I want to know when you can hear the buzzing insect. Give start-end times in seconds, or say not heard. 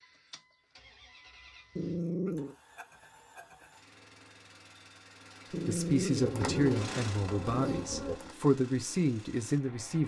6.1-8.3.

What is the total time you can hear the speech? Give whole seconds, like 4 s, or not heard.
4 s.